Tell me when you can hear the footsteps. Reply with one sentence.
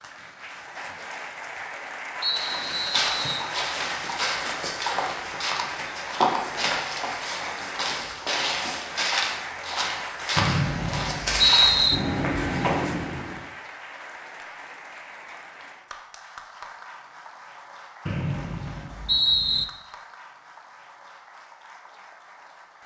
You can hear the footsteps from 2.3 to 13.4 s.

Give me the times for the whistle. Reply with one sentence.
You can hear the whistle from 2.2 to 3.5 s, from 10.3 to 12.0 s and from 18.1 to 19.6 s.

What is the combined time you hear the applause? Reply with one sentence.
The applause can be heard for 23 seconds in total.